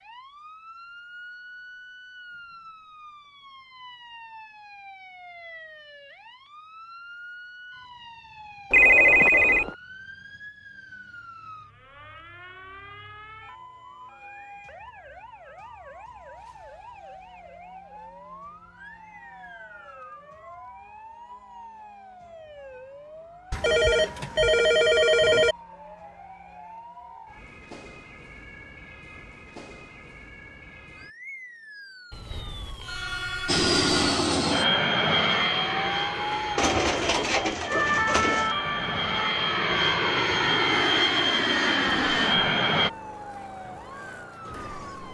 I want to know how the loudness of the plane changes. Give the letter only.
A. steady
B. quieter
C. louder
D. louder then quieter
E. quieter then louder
E.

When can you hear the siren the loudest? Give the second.
38 s.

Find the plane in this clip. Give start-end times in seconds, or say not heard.
33.5-42.9.